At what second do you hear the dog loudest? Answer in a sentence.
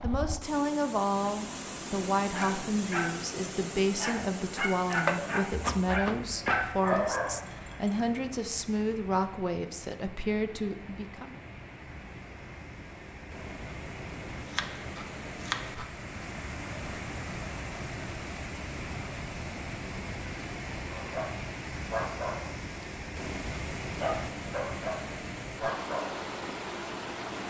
The loudest moment of the dog is at 7 seconds.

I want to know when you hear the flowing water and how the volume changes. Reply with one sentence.
The flowing water can be heard from 0.0 to 27.4 s, getting quieter then louder.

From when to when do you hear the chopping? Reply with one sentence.
You can hear the chopping from 5.0 to 7.1 s and from 14.4 to 15.9 s.